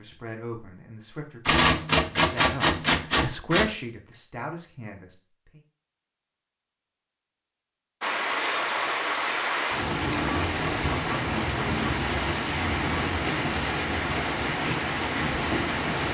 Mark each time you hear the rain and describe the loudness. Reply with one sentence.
The rain can be heard from 8.0 to 16.0 s, at a steady volume.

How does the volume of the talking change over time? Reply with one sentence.
The loudness of the talking goes up, then down.